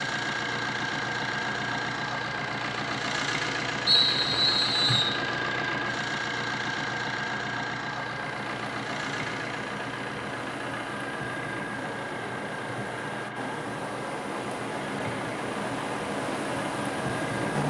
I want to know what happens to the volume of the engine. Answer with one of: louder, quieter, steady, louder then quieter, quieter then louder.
quieter.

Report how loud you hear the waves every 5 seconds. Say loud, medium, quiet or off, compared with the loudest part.
off, medium, medium, loud.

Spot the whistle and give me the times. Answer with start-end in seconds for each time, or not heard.
3.9-5.2.